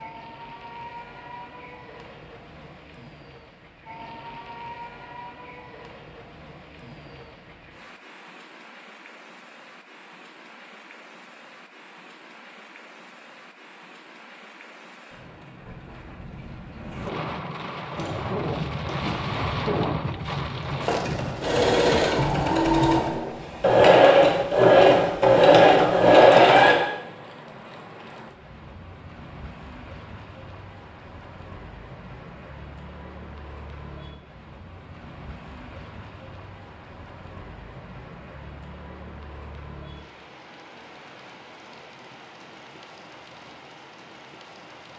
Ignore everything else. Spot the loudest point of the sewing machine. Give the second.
26 s.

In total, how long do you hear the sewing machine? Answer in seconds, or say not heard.
9 s.